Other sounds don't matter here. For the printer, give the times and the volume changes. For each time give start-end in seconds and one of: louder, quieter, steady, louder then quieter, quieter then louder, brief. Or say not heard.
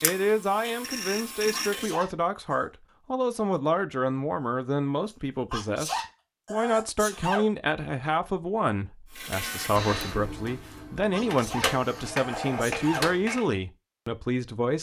0.0-1.9 brief
9.1-13.4 quieter then louder.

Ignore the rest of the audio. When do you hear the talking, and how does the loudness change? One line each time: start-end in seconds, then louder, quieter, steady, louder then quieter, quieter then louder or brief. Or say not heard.
0.0-14.7 steady.